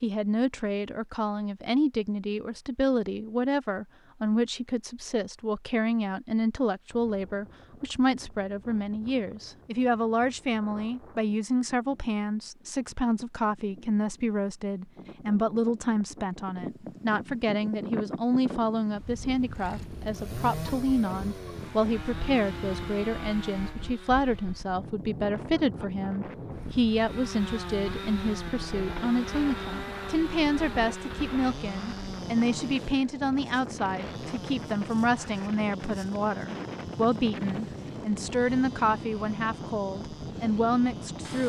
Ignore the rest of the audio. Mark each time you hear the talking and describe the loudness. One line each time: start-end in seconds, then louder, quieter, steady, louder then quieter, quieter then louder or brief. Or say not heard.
0.0-41.4 steady.